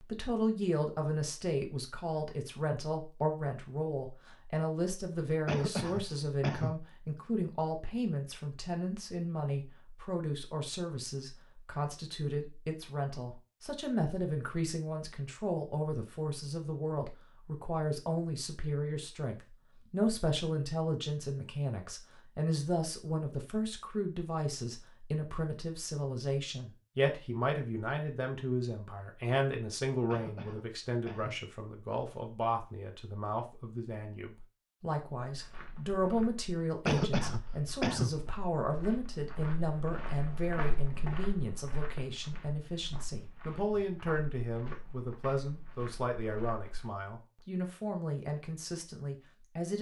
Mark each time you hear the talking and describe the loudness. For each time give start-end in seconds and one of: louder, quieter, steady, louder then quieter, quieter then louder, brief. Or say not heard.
0.0-49.7 steady.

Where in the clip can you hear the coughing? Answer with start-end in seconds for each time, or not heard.
5.5-6.8, 30.1-31.4, 36.9-38.1.